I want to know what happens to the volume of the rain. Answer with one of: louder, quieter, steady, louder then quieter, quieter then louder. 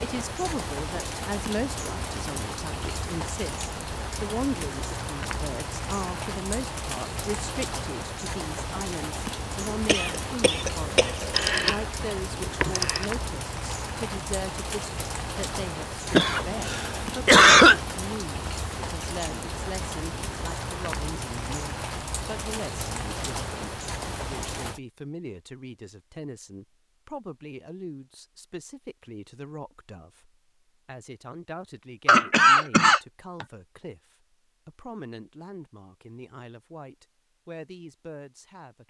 steady.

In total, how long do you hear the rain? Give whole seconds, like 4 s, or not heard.
25 s.